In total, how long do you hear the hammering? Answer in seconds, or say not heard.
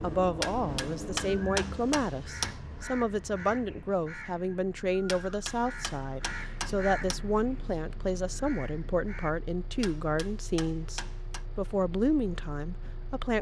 6 s.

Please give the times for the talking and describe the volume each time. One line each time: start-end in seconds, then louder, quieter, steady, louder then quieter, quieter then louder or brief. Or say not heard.
0.0-13.3 steady.